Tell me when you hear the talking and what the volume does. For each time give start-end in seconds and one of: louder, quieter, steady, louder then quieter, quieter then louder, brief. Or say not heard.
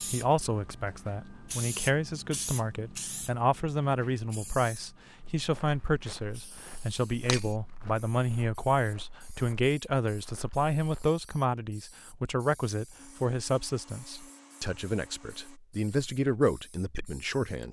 0.1-17.6 steady.